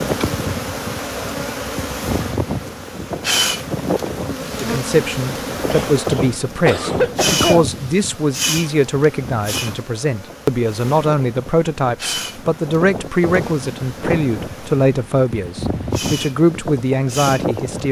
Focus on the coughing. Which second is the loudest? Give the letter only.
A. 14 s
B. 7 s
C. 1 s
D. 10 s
B.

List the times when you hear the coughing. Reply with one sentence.
The coughing can be heard from 5.7 to 7.7 s.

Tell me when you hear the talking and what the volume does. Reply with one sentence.
You can hear the talking from 4.6 to 17.8 s, at a steady volume.